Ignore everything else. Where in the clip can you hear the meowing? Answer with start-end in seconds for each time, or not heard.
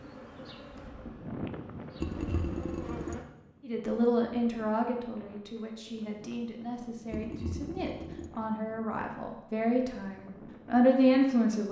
not heard.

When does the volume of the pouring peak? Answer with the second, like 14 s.
2 s.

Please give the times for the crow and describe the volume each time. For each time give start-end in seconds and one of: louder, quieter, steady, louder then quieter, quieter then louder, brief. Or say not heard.
not heard.